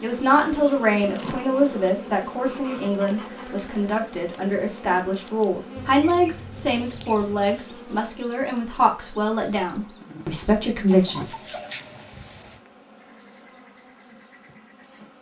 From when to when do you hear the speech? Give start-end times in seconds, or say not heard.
0.0-11.4.